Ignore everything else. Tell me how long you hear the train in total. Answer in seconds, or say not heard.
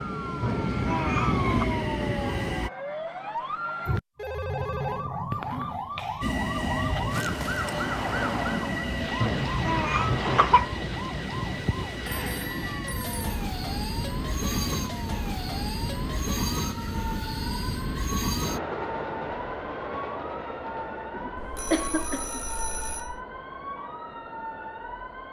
22 s.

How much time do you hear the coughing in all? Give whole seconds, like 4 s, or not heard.
4 s.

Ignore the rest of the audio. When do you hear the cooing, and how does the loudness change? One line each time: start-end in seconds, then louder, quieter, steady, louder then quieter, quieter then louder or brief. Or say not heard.
not heard.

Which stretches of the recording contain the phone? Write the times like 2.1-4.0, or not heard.
4.2-5.1, 12.1-13.4, 21.4-23.2.